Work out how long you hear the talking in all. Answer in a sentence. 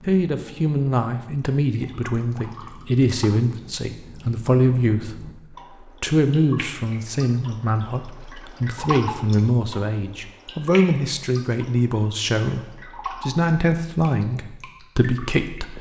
The talking can be heard for 16 seconds in total.